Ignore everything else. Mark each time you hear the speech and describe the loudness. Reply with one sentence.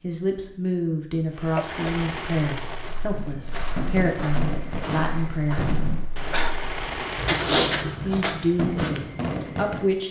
You can hear the speech from 0.0 to 5.8 s, at a steady volume; and briefly from 7.8 to 10.0 s.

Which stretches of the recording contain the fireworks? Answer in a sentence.
You can hear the fireworks from 1.3 to 10.0 s.